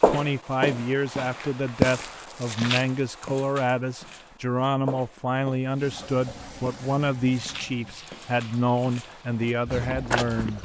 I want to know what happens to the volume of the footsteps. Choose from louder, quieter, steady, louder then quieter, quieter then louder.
quieter then louder.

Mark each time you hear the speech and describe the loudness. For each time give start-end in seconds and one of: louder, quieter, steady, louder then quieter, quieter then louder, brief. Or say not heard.
0.1-10.6 steady.